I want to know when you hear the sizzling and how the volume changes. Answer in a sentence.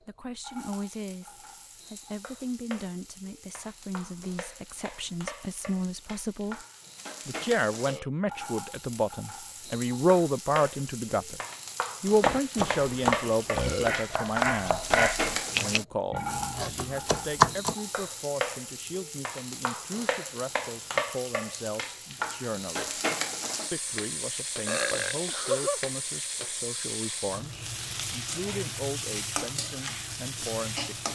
You can hear the sizzling from 0.0 to 31.1 s, getting louder.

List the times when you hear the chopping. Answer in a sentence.
You can hear the chopping from 12.2 to 17.8 s.